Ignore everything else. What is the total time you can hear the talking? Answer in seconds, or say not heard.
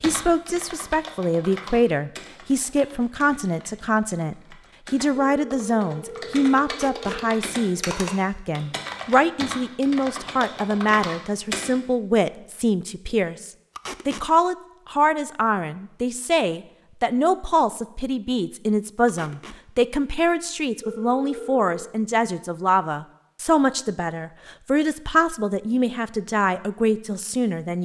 28 s.